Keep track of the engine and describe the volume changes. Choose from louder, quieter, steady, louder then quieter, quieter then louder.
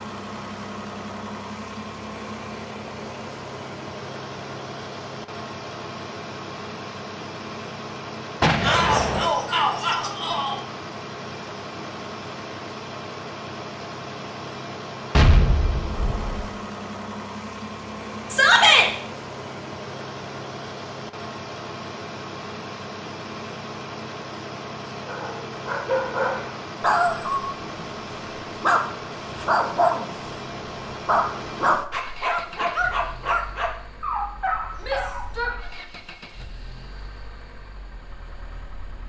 quieter.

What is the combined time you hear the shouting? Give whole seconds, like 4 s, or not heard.
3 s.